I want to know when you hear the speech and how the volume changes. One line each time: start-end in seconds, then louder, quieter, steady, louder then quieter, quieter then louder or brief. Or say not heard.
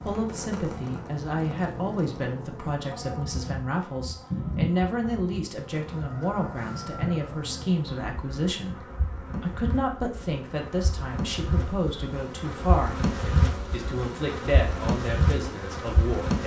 0.0-16.4 steady.